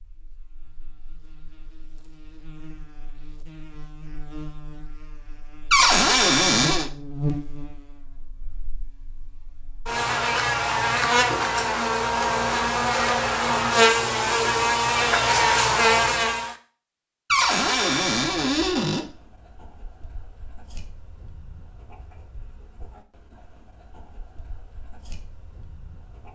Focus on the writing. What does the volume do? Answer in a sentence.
The loudness of the writing stays about the same.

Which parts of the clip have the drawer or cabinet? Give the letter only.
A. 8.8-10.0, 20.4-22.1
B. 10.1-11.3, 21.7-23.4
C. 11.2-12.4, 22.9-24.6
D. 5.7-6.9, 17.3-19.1
D.